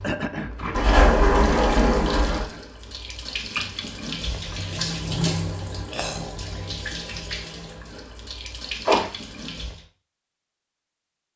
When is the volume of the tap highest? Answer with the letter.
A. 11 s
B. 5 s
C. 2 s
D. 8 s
B.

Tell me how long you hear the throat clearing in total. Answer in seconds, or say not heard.
3 s.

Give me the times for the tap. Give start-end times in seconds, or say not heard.
0.0-9.8.